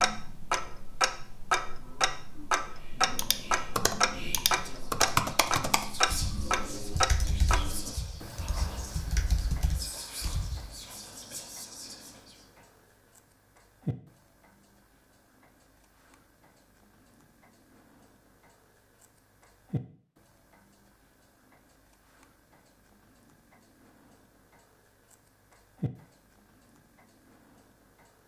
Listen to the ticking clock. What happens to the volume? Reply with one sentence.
The loudness of the ticking clock goes down.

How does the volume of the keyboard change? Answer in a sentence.
The volume of the keyboard goes down, then up.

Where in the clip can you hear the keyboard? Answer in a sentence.
You can hear the keyboard from 3.1 to 10.7 s.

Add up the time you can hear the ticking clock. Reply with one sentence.
The ticking clock can be heard for 28 seconds in total.